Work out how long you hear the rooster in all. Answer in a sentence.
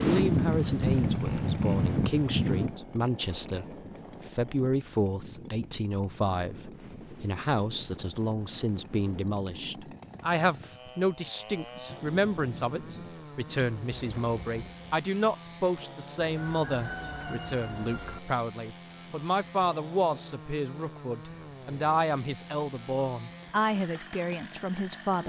You can hear the rooster for 2 seconds altogether.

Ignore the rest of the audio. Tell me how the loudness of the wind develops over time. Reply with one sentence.
The volume of the wind goes down.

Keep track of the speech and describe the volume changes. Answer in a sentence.
The loudness of the speech stays about the same.